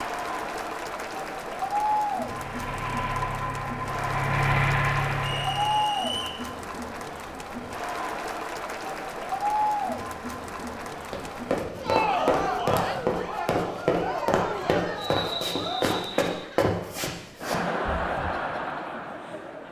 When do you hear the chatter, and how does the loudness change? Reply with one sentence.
You can hear the chatter from 0.0 to 19.6 s, at a steady volume.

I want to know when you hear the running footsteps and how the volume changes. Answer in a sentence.
You can hear the running footsteps from 11.1 to 18.6 s, getting quieter.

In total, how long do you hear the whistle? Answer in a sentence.
You can hear the whistle for 3 seconds altogether.